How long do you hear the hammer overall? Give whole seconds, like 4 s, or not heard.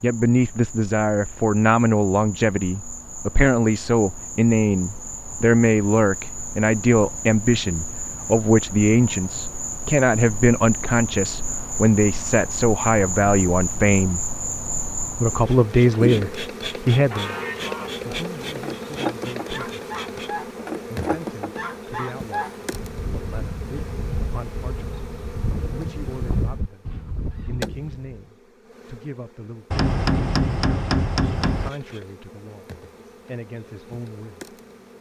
2 s.